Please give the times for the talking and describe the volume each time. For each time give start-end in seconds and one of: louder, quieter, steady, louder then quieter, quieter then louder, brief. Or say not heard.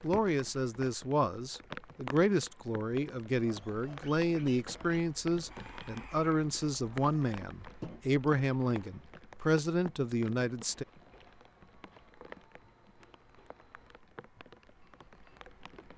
0.0-10.8 steady.